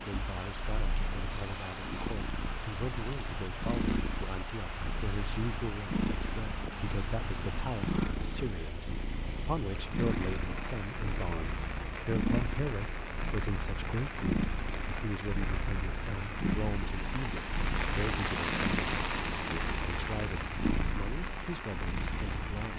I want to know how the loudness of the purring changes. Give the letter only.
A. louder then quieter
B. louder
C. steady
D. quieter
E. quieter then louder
C.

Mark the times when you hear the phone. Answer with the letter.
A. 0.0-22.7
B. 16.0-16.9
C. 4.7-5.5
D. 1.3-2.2
D.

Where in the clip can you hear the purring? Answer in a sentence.
The purring can be heard from 0.0 to 22.7 s.